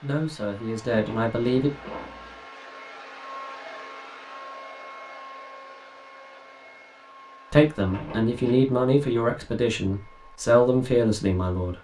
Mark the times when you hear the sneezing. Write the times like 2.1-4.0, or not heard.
not heard.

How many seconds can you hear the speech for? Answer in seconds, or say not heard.
6 s.